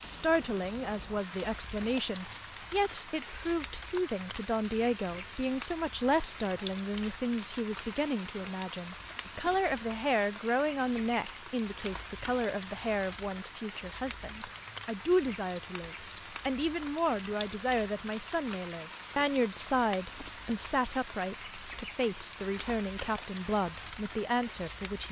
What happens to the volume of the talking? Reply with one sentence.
The volume of the talking stays about the same.